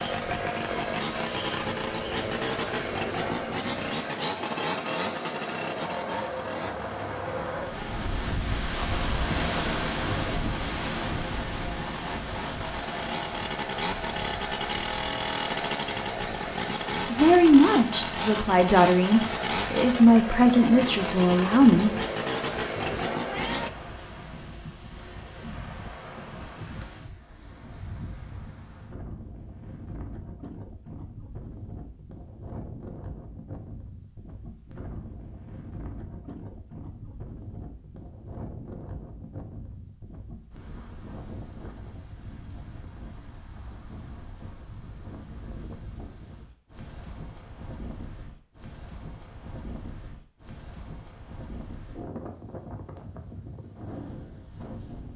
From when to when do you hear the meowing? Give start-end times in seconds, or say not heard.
23.2-23.9.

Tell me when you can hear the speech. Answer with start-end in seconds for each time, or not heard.
17.1-21.9.